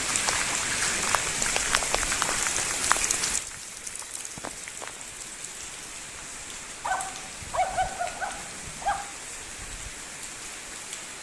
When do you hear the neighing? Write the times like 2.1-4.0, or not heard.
not heard.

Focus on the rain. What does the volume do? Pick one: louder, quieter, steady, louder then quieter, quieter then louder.
quieter.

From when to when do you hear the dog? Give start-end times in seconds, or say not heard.
6.8-9.2.